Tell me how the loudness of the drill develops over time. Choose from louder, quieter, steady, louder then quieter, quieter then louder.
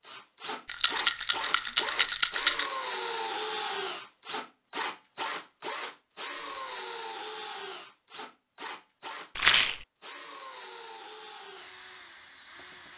quieter.